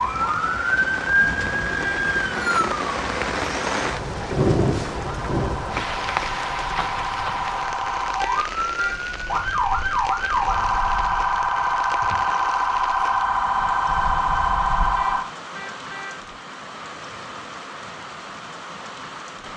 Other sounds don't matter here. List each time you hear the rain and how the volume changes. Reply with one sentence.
The rain can be heard from 0.0 to 19.5 s, getting quieter.